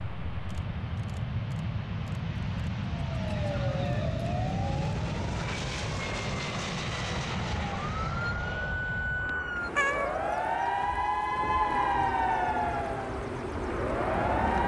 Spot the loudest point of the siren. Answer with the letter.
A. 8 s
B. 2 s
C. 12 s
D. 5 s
C.